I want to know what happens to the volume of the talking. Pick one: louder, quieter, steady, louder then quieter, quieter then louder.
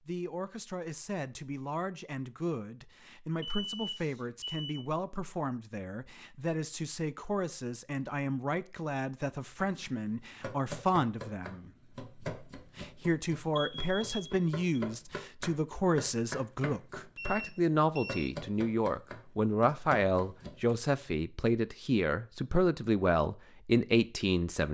louder.